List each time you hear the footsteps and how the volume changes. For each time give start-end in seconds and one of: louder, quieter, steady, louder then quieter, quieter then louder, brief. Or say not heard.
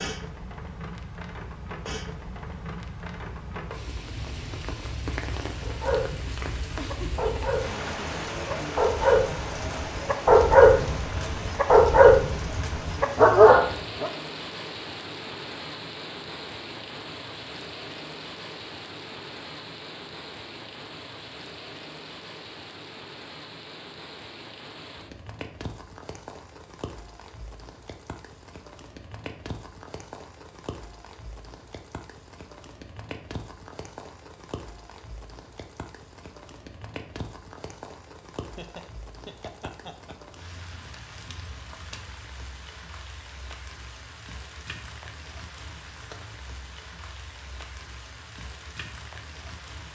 not heard.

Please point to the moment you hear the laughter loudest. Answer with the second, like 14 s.
7 s.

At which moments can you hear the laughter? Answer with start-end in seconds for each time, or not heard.
6.8-7.3, 38.5-40.1.